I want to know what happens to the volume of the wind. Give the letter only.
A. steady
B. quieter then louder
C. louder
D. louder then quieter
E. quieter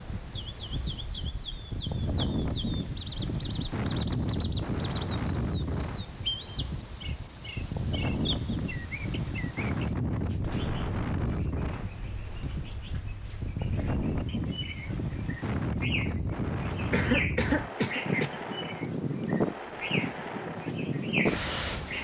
A.